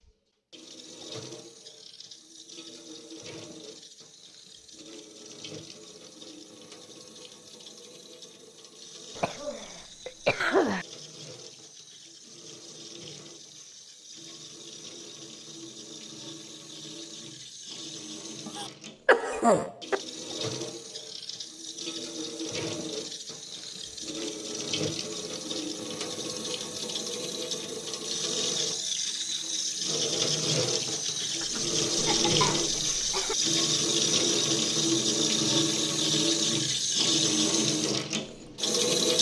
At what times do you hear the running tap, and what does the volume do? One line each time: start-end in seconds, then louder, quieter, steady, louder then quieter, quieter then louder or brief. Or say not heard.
0.0-39.1 louder.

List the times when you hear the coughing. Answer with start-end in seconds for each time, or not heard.
9.2-10.8, 18.4-20.0, 31.4-33.4.